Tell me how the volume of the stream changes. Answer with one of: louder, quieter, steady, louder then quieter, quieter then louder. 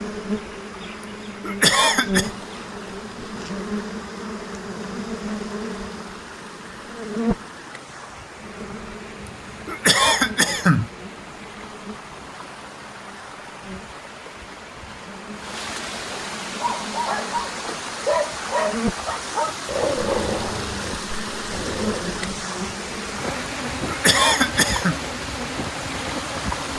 louder.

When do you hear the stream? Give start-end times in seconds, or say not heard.
0.0-26.7.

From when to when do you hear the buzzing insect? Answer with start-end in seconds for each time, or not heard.
0.0-7.5, 8.4-26.7.